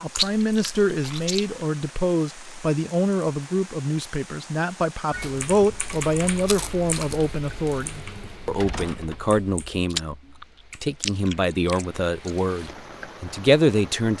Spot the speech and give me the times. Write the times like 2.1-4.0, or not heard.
0.0-10.2, 10.8-14.1.